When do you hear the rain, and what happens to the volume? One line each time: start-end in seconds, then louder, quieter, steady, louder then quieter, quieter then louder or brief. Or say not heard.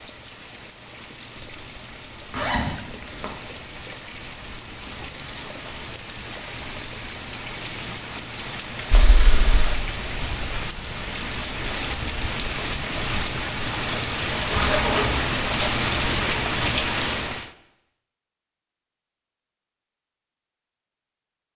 0.0-17.5 louder.